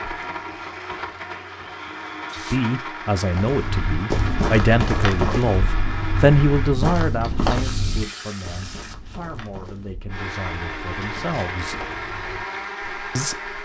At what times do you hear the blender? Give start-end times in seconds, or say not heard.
0.0-6.8, 10.1-13.6.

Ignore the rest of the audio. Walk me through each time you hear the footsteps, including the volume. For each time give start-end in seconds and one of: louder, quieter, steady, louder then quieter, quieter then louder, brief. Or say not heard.
3.3-13.1 quieter.